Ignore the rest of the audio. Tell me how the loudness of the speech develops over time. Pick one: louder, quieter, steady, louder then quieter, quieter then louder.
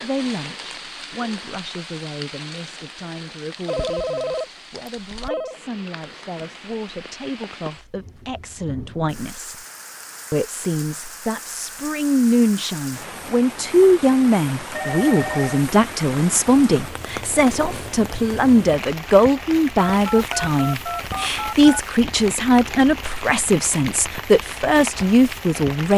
louder.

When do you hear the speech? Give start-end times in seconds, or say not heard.
0.0-9.6, 10.3-25.9.